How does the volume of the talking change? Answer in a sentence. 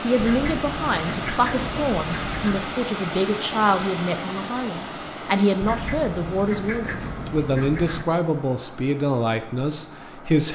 The volume of the talking stays about the same.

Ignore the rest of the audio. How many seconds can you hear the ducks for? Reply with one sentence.
You can hear the ducks for 5 seconds altogether.